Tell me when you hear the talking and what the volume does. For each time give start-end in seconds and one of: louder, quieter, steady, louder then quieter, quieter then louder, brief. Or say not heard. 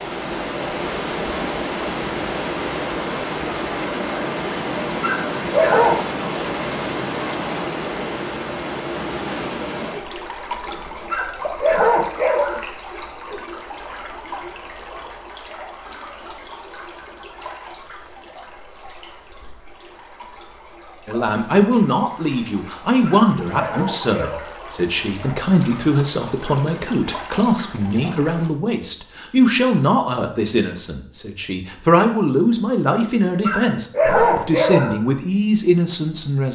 21.1-36.5 steady.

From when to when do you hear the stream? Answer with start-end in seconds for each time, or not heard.
0.0-28.5.